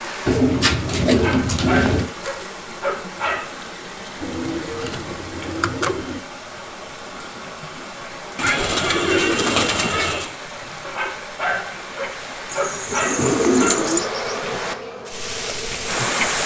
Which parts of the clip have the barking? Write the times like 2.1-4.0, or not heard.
1.1-3.6, 10.8-13.8.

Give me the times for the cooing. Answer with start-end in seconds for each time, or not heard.
0.2-2.1, 4.2-6.2, 8.3-10.3, 12.5-14.1.